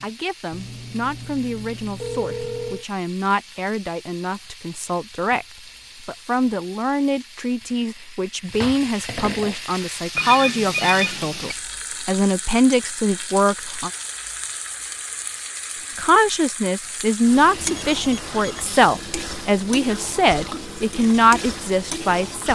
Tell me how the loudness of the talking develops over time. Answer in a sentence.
The loudness of the talking goes up.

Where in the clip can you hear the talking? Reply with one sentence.
You can hear the talking from 0.0 to 13.9 s and from 15.9 to 22.5 s.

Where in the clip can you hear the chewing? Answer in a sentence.
You can't hear the chewing here.